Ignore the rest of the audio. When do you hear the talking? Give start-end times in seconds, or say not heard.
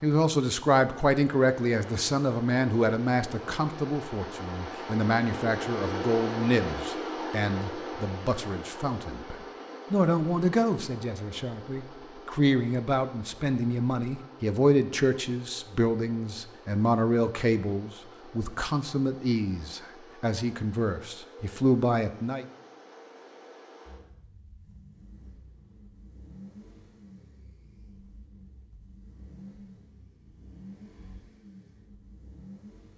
0.0-22.4.